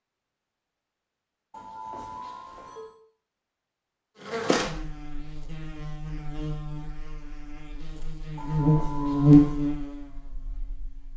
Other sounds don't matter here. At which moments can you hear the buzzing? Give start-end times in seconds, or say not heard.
4.2-11.1.